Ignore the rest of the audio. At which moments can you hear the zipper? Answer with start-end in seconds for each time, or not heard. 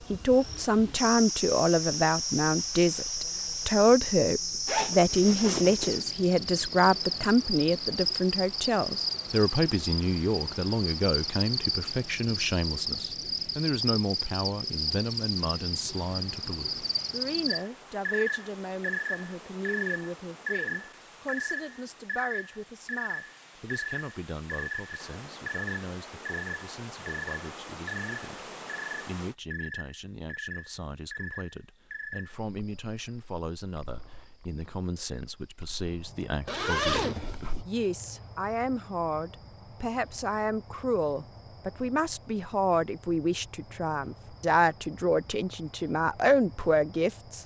4.7-6.0, 36.5-37.6.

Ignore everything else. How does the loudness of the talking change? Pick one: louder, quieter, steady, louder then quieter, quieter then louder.
quieter then louder.